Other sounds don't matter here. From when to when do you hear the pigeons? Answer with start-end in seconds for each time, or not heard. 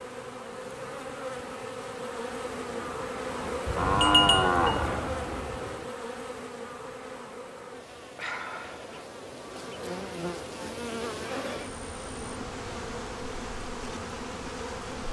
not heard.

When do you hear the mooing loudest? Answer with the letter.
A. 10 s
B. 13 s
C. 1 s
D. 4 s
D.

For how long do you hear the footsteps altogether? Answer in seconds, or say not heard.
not heard.